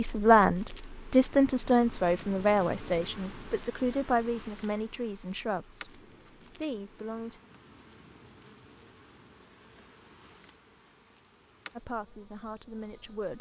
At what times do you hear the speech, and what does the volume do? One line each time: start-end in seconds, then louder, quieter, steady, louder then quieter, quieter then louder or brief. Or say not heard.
0.0-7.4 quieter
11.8-13.3 brief.